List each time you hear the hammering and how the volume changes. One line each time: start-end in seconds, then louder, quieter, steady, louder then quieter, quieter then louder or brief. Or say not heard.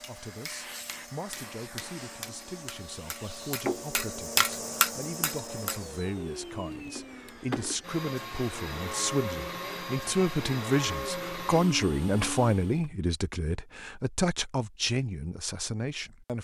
0.0-6.0 louder.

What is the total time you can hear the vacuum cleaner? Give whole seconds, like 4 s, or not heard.
13 s.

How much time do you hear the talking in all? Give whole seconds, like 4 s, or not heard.
16 s.